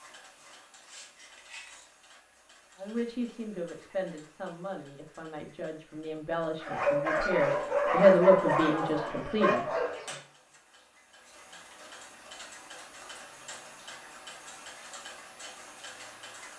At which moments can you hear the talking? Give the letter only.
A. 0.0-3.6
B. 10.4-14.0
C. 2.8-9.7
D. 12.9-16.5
C.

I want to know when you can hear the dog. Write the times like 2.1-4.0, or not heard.
6.5-10.2.